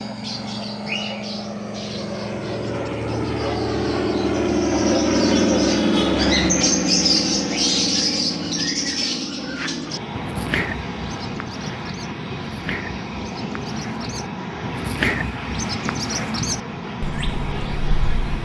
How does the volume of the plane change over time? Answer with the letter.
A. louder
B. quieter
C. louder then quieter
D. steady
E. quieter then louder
C.